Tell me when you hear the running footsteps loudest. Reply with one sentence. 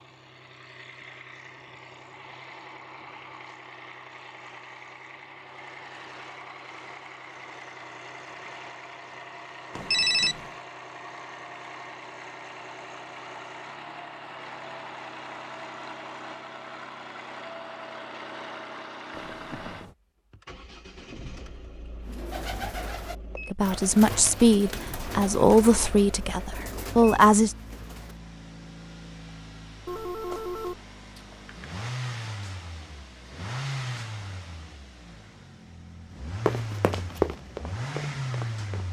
The loudest moment of the running footsteps is at 37 seconds.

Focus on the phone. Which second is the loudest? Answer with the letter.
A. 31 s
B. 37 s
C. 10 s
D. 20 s
C.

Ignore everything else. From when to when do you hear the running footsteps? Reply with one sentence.
The running footsteps can be heard from 36.5 to 38.8 s.